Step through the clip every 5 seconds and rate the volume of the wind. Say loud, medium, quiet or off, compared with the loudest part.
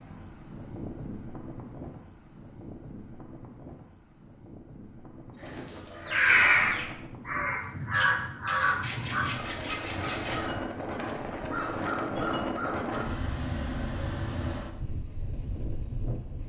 medium, medium, loud, medium.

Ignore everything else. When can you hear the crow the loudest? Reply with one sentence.
The volume of the crow peaks at 6 seconds.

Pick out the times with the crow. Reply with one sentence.
The crow can be heard from 5.5 to 13.1 s.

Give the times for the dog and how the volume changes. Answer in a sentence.
The dog can't be heard in this clip.